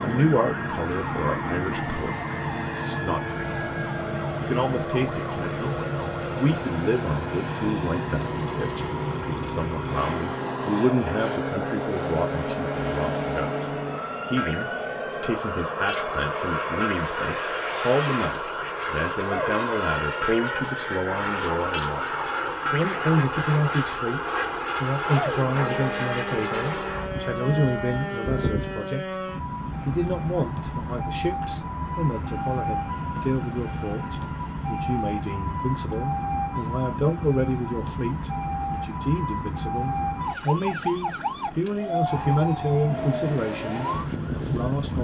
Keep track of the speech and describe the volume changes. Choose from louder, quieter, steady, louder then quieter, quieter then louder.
steady.